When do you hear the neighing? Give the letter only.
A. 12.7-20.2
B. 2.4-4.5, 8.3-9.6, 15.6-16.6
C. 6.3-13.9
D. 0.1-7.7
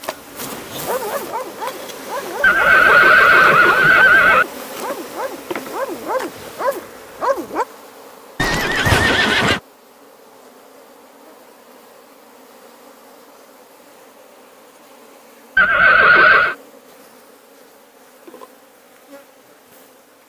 B.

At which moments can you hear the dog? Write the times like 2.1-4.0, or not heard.
0.1-7.7.